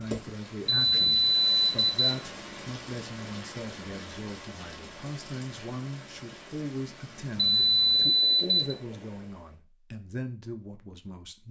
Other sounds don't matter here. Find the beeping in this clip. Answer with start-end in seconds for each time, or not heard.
0.7-2.0, 7.3-8.8.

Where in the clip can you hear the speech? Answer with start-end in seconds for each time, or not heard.
0.0-11.4.